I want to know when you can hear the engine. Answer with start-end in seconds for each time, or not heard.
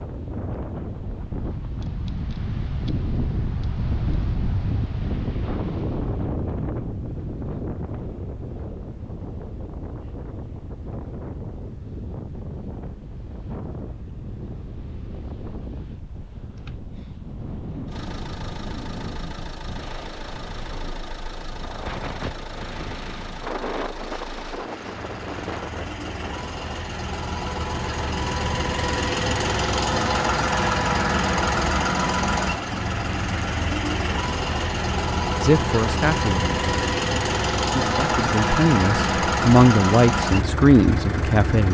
17.9-41.6.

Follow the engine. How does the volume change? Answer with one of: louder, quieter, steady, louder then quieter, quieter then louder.
louder.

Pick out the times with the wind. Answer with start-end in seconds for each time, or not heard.
0.0-26.6.